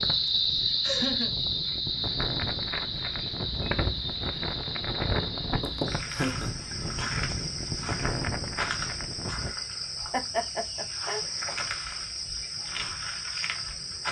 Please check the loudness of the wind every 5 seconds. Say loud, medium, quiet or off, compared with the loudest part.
loud, loud, off.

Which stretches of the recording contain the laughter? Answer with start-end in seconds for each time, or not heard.
0.2-1.4, 5.6-6.8, 10.1-11.2.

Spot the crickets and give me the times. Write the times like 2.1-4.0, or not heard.
0.0-14.0.